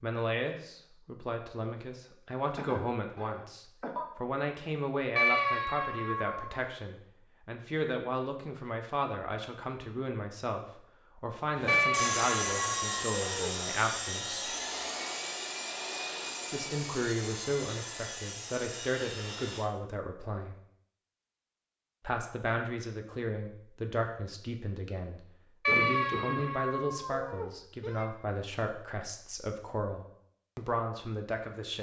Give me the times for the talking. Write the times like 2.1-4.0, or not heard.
0.0-14.6, 16.5-20.6, 22.0-31.7.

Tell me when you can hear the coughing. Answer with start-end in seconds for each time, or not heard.
2.5-4.1, 25.6-26.4.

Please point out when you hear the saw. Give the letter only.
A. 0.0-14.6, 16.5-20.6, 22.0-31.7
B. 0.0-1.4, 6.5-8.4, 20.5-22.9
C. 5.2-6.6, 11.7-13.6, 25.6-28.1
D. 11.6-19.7
D.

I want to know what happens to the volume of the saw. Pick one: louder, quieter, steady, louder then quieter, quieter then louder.
quieter.